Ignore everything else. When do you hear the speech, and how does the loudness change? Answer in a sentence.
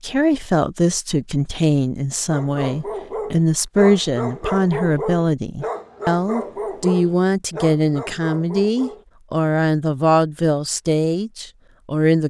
You can hear the speech from 0.0 to 12.2 s, at a steady volume.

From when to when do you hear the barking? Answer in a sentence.
The barking can be heard from 2.3 to 9.1 s.